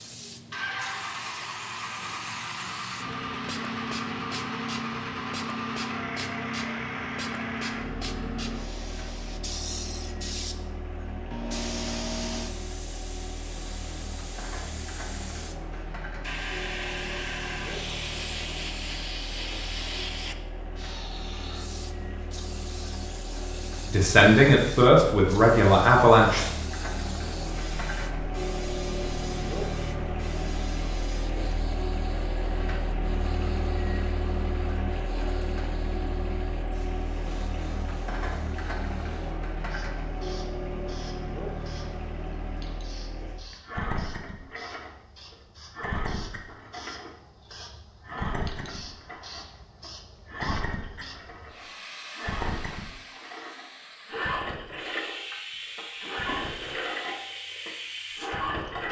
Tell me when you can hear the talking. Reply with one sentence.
You can hear the talking from 23.9 to 26.5 s.